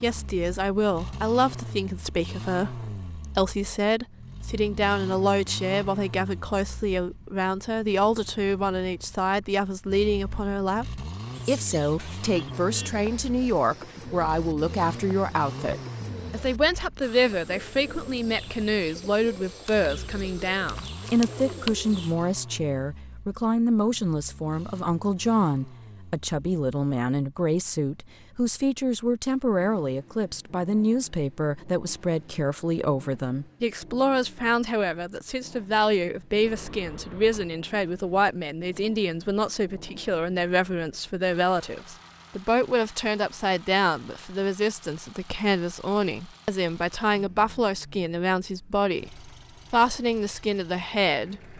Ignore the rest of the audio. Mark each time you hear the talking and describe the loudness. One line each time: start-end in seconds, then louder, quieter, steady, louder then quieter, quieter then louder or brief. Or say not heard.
0.0-51.5 steady.